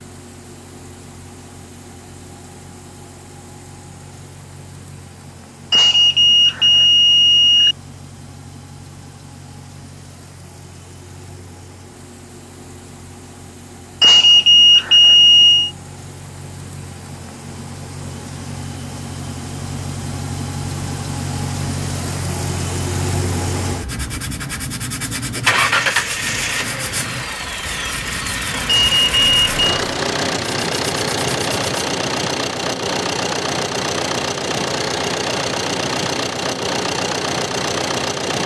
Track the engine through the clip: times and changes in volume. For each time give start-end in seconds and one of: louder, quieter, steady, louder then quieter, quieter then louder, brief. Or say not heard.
0.0-38.4 louder.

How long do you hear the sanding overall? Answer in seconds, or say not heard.
8 s.